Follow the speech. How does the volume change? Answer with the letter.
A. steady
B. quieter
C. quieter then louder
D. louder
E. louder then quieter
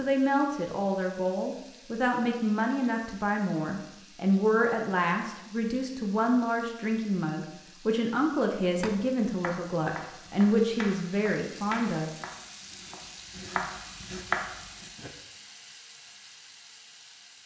A.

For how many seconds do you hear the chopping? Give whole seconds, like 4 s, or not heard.
6 s.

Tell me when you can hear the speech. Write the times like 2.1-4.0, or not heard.
0.0-12.1.